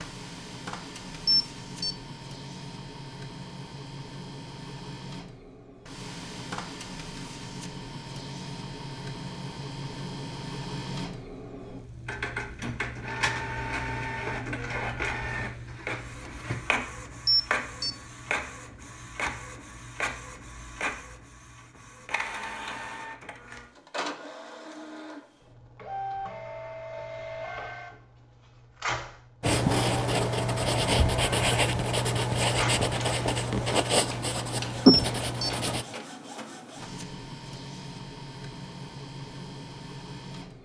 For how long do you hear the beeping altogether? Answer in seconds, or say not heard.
2 s.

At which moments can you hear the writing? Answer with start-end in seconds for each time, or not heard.
29.4-35.9.